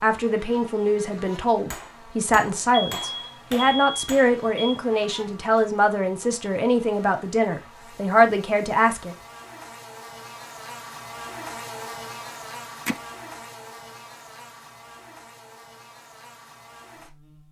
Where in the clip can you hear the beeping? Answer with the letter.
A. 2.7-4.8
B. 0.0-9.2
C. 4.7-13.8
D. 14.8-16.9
A.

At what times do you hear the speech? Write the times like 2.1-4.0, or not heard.
0.0-9.2.